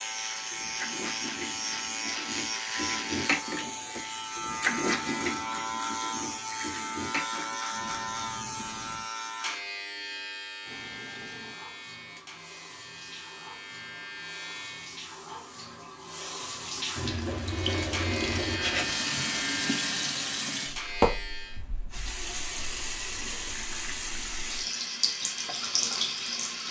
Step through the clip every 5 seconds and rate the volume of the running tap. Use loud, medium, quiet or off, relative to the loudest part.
loud, medium, quiet, loud, loud, loud.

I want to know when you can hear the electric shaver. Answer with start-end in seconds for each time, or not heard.
0.0-15.1, 17.4-21.6.